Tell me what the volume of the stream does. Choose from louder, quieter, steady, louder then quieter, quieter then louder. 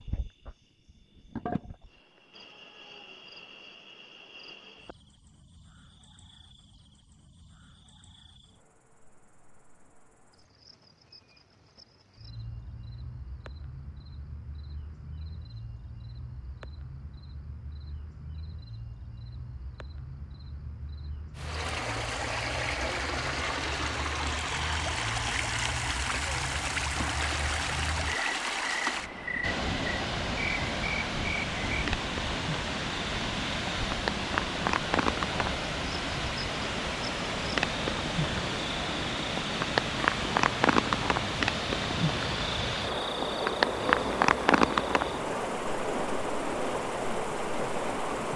steady.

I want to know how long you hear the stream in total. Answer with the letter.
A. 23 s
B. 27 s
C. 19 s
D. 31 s
B.